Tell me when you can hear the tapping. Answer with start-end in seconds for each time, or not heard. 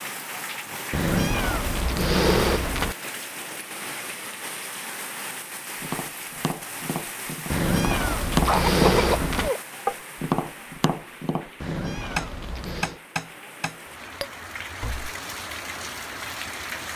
5.8-15.1.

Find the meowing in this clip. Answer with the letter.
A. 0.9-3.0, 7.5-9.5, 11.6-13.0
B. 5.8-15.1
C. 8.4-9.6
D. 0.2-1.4
A.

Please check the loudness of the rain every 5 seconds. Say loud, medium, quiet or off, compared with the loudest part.
loud, loud, medium, loud.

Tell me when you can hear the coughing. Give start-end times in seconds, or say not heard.
8.4-9.6.